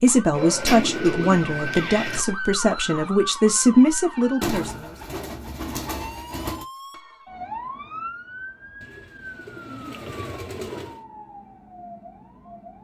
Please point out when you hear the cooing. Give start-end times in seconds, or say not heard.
0.3-2.2, 4.4-6.7, 8.8-11.1.